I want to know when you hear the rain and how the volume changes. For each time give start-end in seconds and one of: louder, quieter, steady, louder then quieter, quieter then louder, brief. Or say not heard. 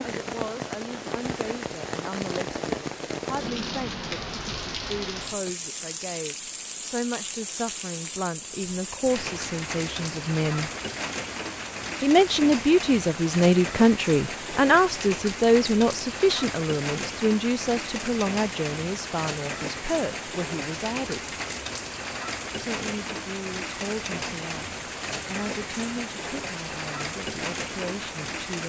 0.0-28.6 steady.